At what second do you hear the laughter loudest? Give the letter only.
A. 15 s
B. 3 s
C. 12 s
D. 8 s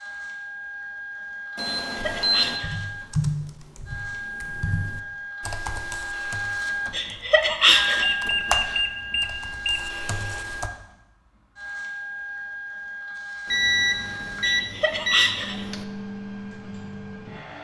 D.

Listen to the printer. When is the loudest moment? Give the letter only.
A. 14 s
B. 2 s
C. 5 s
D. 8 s
D.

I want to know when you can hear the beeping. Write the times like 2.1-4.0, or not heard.
1.6-2.6, 7.7-9.8, 13.4-15.8.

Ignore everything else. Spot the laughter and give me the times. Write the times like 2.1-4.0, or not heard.
1.6-2.9, 6.9-8.2, 14.4-15.7.